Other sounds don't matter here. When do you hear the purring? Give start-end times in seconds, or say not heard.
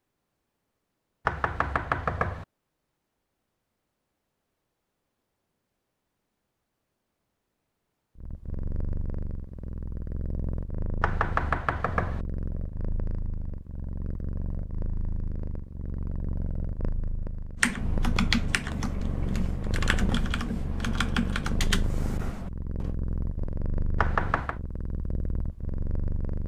8.2-26.4.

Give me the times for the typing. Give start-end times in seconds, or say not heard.
17.6-22.9.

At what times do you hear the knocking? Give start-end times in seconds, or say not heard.
1.2-2.5, 11.0-12.2, 23.9-24.6.